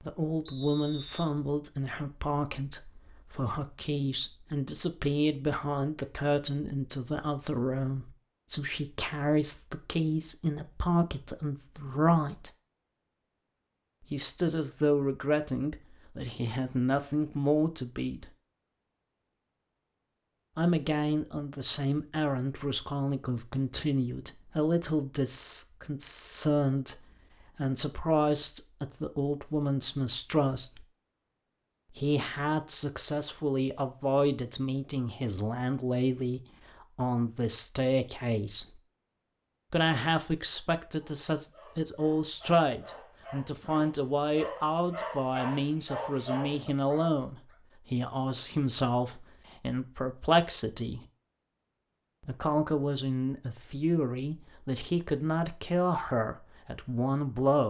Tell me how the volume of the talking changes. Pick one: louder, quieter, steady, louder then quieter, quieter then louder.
steady.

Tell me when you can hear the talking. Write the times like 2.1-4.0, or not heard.
0.0-12.5, 14.0-18.3, 20.6-30.9, 31.9-38.8, 39.7-51.0, 52.2-57.6.